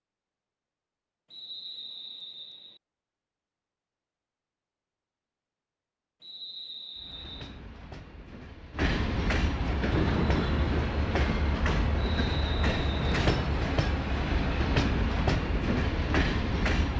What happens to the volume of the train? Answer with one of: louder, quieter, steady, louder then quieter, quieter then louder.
louder.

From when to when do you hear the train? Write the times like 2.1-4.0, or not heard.
7.0-16.9.